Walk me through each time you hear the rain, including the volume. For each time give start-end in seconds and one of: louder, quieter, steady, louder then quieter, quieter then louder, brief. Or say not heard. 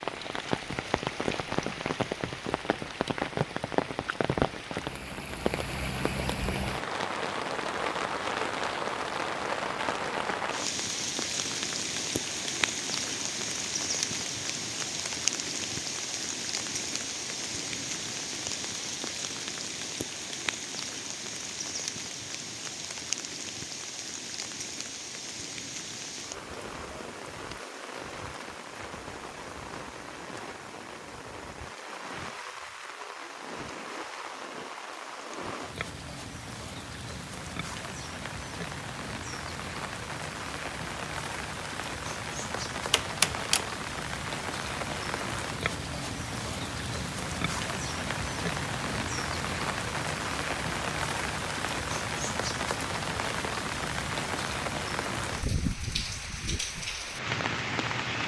0.0-58.2 quieter then louder.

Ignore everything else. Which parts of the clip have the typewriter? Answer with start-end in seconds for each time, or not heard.
42.5-43.7.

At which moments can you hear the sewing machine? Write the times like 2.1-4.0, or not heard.
not heard.